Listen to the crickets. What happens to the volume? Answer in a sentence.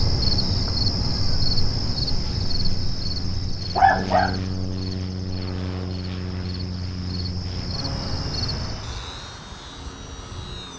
The loudness of the crickets goes down, then up.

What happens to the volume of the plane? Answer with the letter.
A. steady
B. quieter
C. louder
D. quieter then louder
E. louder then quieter
E.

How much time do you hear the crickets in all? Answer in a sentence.
The crickets can be heard for 9 seconds in total.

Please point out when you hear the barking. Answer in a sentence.
You can hear the barking from 3.8 to 4.4 s.